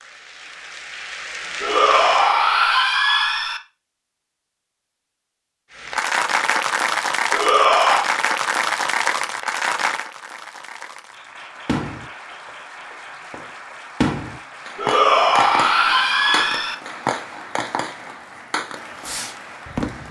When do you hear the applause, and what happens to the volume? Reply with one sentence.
You can hear the applause briefly from 0.0 to 2.4 s; and from 5.7 to 20.0 s, getting quieter.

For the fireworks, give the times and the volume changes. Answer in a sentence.
You can hear the fireworks from 11.7 to 20.0 s, getting louder then quieter.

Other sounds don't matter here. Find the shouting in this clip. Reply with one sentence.
You can hear the shouting from 1.6 to 3.6 s, from 7.3 to 8.1 s and from 14.8 to 16.8 s.